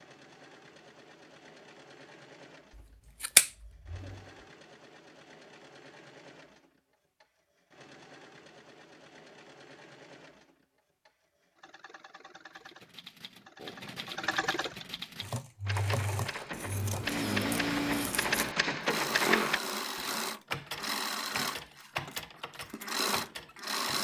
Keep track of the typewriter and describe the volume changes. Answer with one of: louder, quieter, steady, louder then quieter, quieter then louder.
louder then quieter.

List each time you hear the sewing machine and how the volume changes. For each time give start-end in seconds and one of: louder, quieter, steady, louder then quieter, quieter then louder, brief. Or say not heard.
0.0-23.9 louder.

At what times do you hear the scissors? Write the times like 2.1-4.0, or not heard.
2.8-4.2, 16.5-18.6.